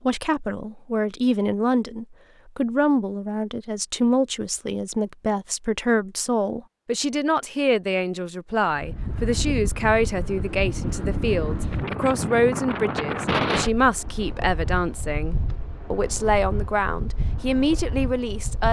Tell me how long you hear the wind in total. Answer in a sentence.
You can hear the wind for 10 seconds altogether.